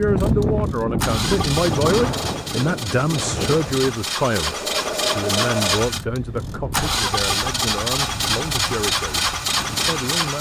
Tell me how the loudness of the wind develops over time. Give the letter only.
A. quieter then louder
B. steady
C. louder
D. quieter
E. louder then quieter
D.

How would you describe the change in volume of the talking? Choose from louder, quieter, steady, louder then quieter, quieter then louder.
quieter.